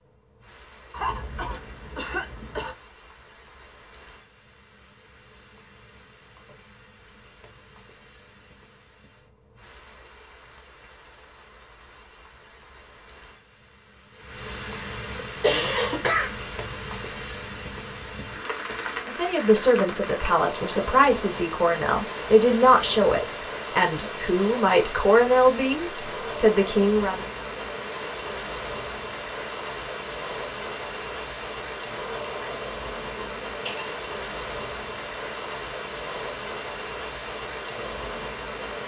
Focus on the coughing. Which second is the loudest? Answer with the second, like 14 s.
16 s.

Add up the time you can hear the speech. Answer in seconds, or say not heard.
8 s.